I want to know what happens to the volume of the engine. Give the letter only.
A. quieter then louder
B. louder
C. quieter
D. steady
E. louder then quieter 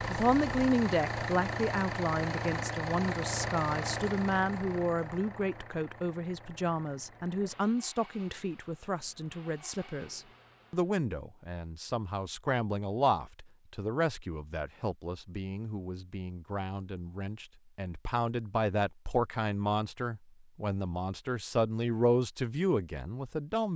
C.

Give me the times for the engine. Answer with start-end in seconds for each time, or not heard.
0.0-10.9.